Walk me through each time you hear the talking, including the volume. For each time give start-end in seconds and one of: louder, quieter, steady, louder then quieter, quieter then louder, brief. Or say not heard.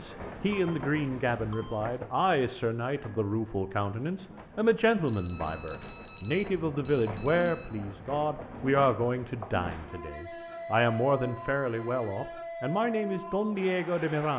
0.0-14.3 steady.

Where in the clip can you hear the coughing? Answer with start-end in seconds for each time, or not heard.
not heard.